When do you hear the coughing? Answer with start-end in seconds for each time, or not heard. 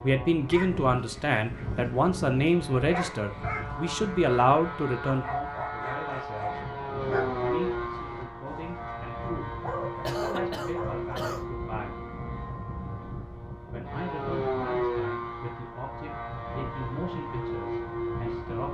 10.0-11.4.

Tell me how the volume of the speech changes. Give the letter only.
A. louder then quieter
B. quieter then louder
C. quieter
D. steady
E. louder
C.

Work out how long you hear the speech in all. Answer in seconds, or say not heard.
17 s.